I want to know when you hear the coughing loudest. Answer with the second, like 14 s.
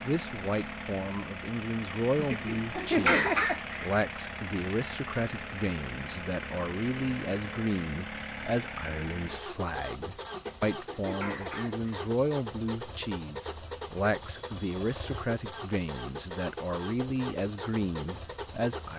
3 s.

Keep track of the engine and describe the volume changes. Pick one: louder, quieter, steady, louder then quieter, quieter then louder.
steady.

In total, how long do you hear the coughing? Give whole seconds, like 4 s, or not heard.
3 s.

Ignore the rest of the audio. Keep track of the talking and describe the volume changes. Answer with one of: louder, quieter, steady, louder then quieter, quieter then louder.
steady.